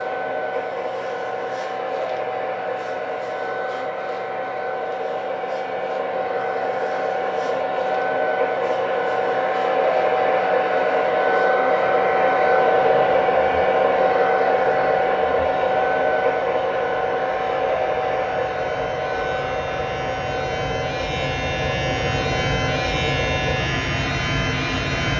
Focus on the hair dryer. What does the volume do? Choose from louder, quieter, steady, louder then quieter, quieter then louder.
louder then quieter.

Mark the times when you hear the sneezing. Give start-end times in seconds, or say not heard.
not heard.